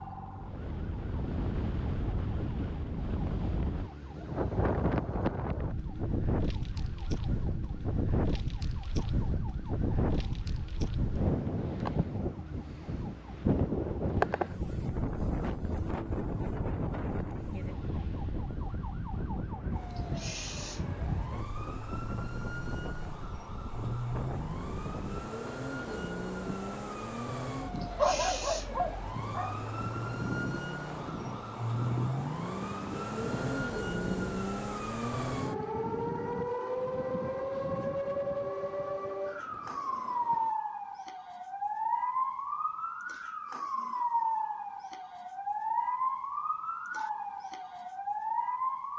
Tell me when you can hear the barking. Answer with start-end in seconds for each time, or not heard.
27.9-29.6.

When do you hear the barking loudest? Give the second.
28 s.